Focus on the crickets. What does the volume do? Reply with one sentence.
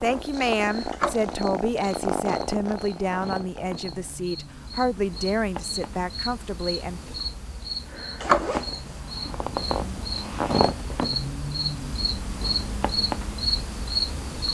The volume of the crickets goes up.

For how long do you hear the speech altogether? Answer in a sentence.
The speech can be heard for 7 seconds in total.